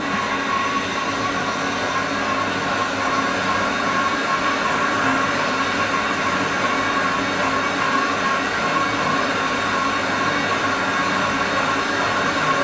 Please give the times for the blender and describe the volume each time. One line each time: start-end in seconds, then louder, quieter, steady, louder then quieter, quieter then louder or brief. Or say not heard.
0.0-12.5 steady.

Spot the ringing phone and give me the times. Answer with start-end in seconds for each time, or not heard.
not heard.